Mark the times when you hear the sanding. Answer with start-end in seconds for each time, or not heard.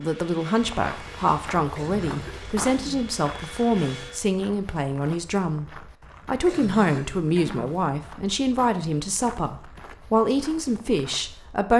not heard.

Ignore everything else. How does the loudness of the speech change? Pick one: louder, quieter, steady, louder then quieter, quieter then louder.
steady.